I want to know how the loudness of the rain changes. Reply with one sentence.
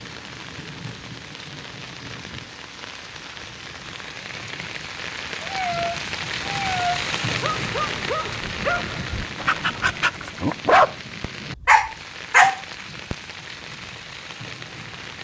The volume of the rain goes up, then down.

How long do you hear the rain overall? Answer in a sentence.
The rain can be heard for 15 seconds in total.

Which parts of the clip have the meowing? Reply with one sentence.
The meowing can be heard from 5.4 to 7.0 s.